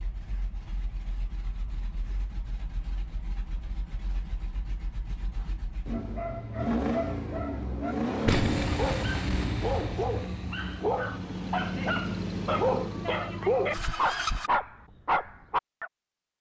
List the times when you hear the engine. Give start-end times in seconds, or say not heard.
0.0-14.5.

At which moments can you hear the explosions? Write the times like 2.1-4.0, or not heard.
8.2-10.8.